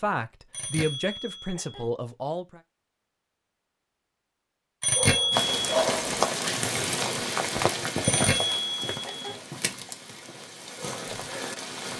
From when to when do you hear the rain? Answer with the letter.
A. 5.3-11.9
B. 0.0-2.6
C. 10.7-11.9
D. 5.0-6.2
A.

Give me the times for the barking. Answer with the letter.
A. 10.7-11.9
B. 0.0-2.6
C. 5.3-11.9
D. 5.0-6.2
D.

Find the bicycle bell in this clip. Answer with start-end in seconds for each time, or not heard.
0.5-1.8, 4.8-5.5, 8.0-9.3.